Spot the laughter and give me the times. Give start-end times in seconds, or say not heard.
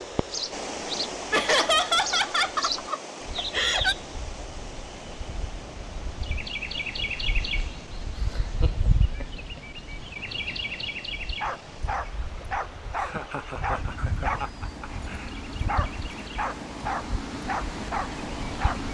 1.3-4.0, 8.3-9.6, 12.9-15.3.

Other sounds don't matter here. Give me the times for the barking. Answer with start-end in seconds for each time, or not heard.
11.4-18.8.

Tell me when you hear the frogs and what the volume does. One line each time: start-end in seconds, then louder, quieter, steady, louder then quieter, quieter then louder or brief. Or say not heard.
not heard.